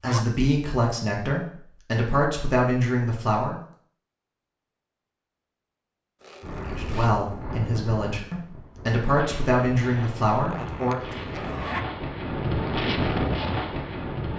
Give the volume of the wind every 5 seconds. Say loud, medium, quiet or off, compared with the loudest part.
off, medium, loud.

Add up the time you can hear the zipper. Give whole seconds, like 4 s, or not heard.
3 s.